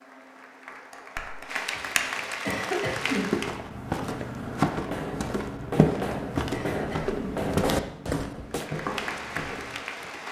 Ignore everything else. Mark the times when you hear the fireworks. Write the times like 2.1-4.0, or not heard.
4.3-8.7.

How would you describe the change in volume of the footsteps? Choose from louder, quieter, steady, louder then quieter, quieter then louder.
quieter.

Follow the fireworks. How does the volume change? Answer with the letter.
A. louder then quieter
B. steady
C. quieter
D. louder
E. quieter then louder
D.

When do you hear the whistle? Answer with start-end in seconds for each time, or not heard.
not heard.